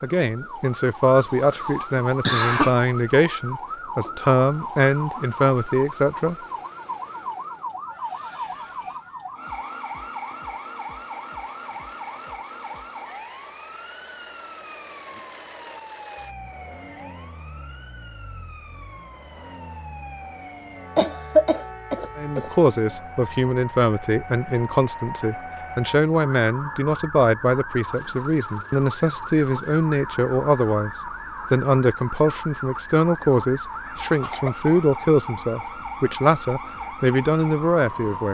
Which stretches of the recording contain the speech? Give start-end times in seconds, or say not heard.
0.0-6.3, 22.1-30.9, 31.5-38.2.